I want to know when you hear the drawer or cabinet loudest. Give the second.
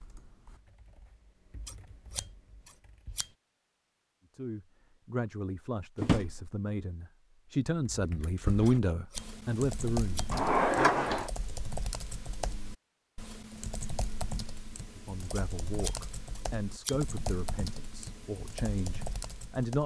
11 s.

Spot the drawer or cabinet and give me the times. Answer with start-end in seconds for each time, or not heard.
6.0-6.5, 10.3-11.3.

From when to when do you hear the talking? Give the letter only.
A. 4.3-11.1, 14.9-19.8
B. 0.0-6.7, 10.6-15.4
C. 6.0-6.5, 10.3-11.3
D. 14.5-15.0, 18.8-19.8
A.